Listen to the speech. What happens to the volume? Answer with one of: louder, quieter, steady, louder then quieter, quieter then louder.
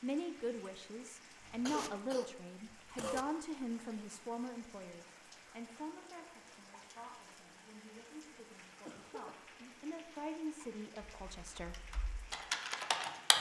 quieter then louder.